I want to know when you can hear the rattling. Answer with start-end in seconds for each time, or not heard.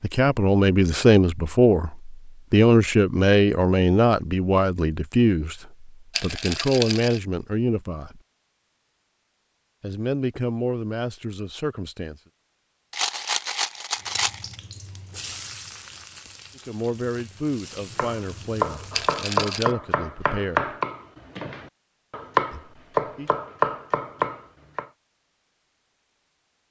6.1-7.2, 12.9-14.6, 18.9-19.7.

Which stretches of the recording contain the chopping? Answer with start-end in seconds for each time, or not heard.
17.9-24.9.